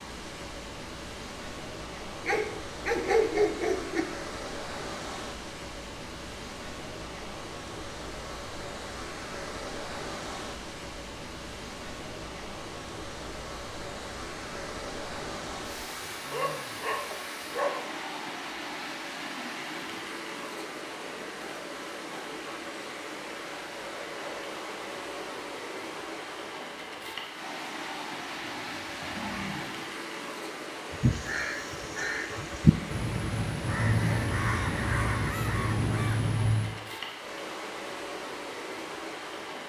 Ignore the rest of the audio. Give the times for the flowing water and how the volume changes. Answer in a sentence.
You can hear the flowing water from 0.0 to 39.6 s, at a steady volume.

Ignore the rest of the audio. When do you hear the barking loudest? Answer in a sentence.
The volume of the barking peaks at 3 seconds.